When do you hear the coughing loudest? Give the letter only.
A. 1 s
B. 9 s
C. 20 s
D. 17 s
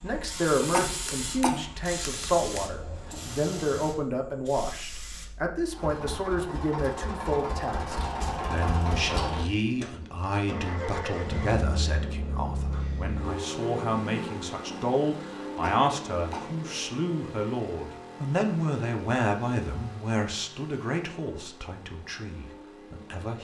A.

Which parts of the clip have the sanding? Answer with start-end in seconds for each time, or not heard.
not heard.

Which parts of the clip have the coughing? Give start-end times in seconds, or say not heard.
0.7-2.6, 15.6-16.6.